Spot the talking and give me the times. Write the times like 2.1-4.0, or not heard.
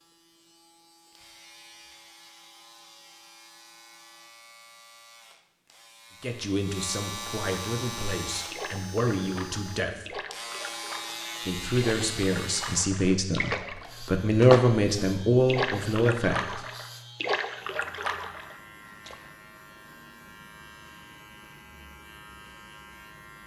6.2-10.2, 11.4-16.6.